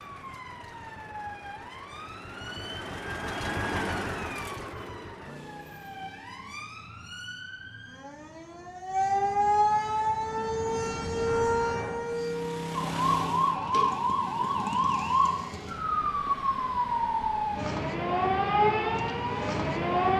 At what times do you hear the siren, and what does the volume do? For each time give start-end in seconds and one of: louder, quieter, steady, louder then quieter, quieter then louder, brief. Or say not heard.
0.0-20.1 louder.